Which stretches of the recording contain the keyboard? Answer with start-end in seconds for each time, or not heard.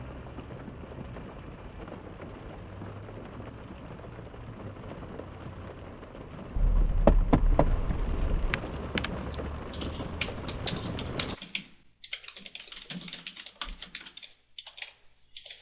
8.5-15.5.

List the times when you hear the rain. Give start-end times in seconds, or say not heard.
0.0-11.3.